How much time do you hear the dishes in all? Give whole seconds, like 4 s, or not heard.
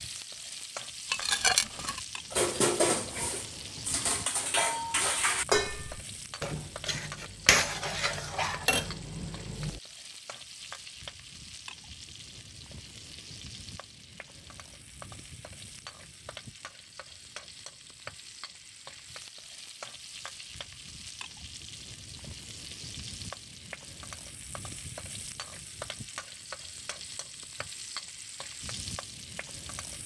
9 s.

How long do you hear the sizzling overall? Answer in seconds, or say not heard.
30 s.